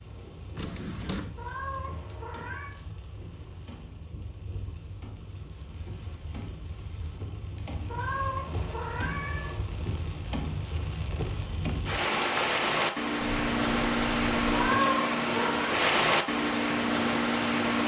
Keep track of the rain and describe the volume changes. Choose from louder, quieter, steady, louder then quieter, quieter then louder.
louder.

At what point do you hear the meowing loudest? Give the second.
15 s.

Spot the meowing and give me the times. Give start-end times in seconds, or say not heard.
1.4-2.8, 7.8-9.7, 14.5-15.8.